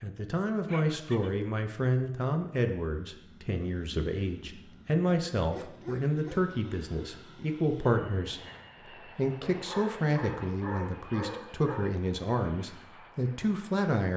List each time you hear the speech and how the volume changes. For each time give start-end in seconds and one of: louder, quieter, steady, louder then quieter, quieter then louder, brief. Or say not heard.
0.0-14.1 steady.